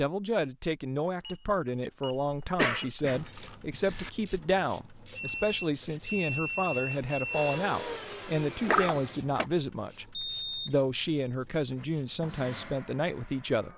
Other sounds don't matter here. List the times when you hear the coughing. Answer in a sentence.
The coughing can be heard from 2.1 to 4.1 s and from 8.6 to 9.4 s.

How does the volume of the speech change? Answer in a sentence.
The volume of the speech stays about the same.